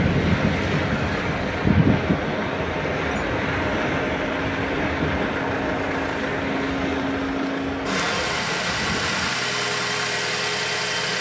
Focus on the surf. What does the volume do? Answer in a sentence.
The loudness of the surf goes down.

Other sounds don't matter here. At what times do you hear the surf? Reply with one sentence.
You can hear the surf from 0.0 to 9.3 s.